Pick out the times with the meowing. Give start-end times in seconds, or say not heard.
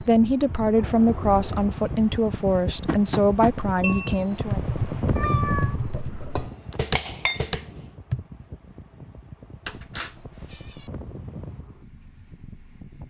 0.8-1.8, 4.5-6.5, 9.7-10.9.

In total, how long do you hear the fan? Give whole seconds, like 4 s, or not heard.
13 s.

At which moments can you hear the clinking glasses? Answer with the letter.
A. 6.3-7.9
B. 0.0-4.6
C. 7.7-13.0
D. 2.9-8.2
A.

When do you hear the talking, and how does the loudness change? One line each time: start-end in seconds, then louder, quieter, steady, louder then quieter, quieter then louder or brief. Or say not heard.
0.0-4.6 steady.